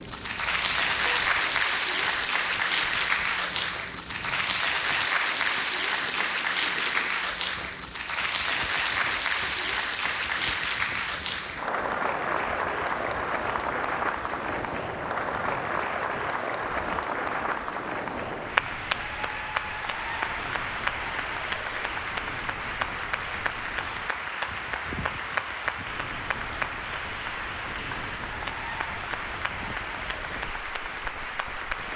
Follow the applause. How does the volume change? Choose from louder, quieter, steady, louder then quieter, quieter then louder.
quieter.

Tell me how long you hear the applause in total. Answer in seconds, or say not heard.
32 s.